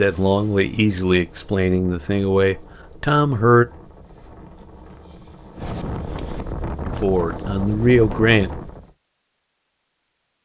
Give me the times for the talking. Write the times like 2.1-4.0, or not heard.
0.0-3.6, 6.8-8.5.